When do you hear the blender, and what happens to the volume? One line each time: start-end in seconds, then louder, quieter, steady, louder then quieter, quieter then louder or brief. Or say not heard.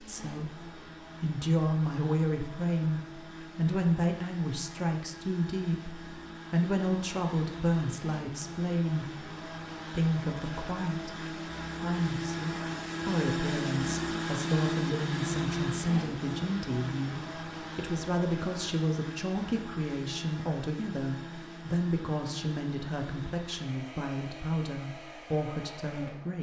0.0-26.3 louder then quieter.